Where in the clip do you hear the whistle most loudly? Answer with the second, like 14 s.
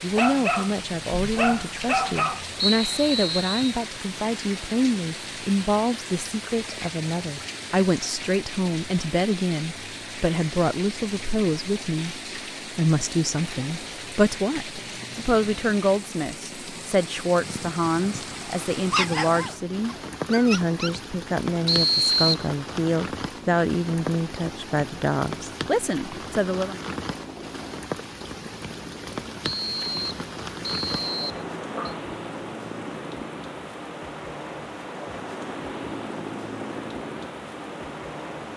22 s.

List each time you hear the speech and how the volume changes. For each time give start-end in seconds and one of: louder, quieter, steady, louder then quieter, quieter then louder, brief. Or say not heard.
0.0-26.8 steady.